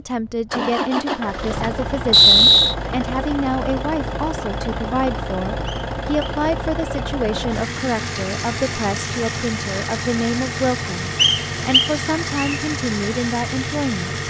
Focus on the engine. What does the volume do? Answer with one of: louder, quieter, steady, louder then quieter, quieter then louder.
steady.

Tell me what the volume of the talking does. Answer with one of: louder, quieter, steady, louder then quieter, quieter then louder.
steady.